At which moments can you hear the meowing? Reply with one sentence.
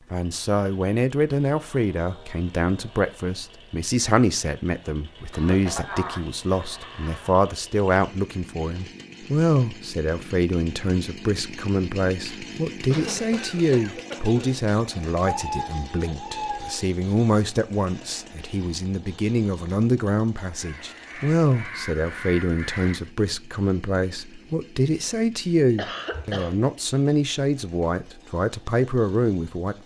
You can hear the meowing from 15.2 to 16.9 s.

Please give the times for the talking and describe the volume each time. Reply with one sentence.
You can hear the talking from 0.1 to 29.8 s, at a steady volume.